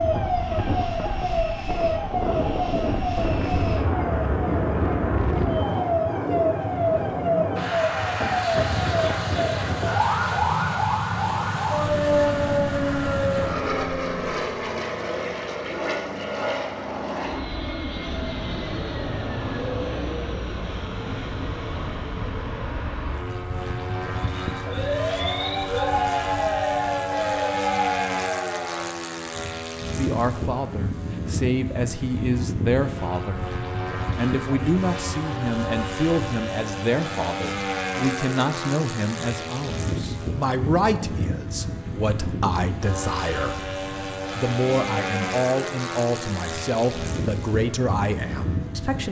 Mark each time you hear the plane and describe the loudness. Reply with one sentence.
You can hear the plane from 0.0 to 49.0 s, at a steady volume.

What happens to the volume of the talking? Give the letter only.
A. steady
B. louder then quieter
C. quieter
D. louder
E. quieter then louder
A.